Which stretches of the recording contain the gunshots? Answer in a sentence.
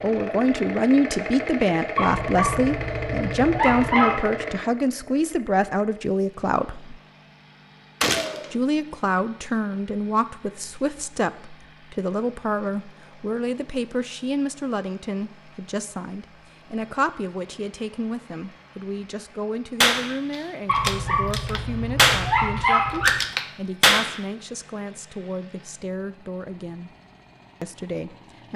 You can hear the gunshots from 8.0 to 8.5 s and from 19.8 to 24.2 s.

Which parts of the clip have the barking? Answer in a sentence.
The barking can be heard from 1.9 to 4.2 s and from 20.6 to 23.2 s.